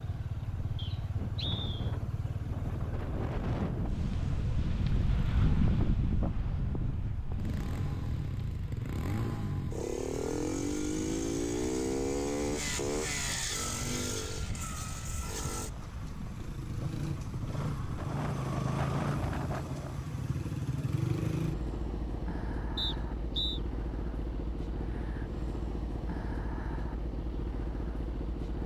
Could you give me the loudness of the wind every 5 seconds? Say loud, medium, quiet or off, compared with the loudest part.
loud, loud, medium, medium, off, off.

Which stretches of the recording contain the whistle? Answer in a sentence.
The whistle can be heard from 0.8 to 1.9 s and from 22.8 to 23.6 s.